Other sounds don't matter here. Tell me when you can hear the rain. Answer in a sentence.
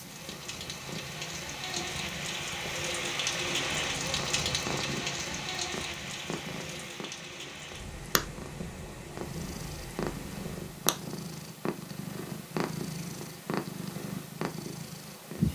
The rain can be heard from 0.0 to 10.9 s.